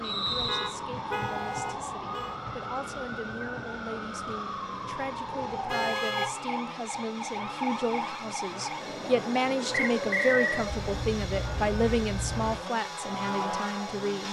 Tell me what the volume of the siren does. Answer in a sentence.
The loudness of the siren stays about the same.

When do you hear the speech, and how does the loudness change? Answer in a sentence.
The speech can be heard from 0.0 to 14.2 s, getting louder.